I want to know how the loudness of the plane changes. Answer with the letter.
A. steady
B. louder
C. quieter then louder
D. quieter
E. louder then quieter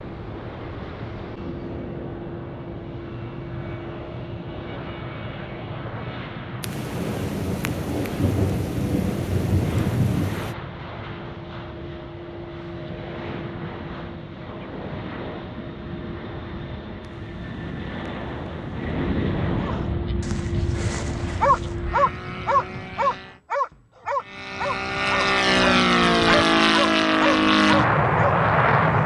B.